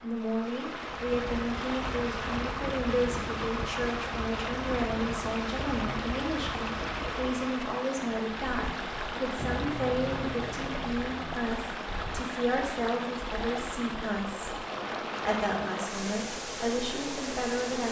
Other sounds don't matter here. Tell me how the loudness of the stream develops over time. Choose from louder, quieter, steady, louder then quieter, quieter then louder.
steady.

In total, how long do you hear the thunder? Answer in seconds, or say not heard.
2 s.